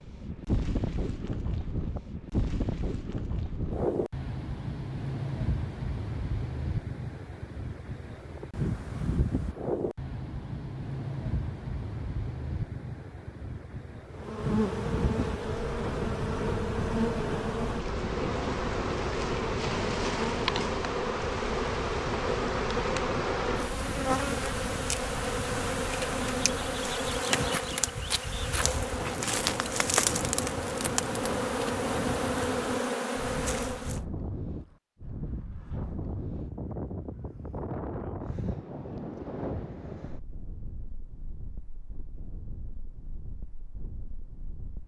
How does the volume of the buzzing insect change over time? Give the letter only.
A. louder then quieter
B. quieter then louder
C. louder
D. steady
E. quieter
D.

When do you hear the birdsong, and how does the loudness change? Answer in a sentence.
The birdsong can't be heard in this clip.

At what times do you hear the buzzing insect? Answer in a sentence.
You can hear the buzzing insect from 14.1 to 34.0 s.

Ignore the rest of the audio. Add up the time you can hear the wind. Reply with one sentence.
You can hear the wind for 45 seconds altogether.